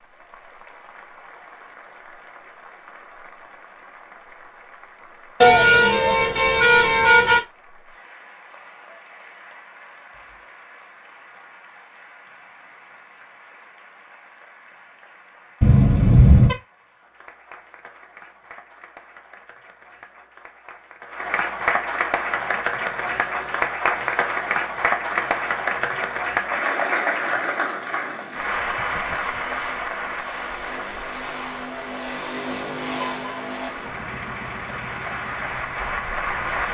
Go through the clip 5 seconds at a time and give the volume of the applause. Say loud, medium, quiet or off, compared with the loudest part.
quiet, quiet, quiet, quiet, loud, loud, medium, loud.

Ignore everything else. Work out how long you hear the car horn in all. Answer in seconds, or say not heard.
4 s.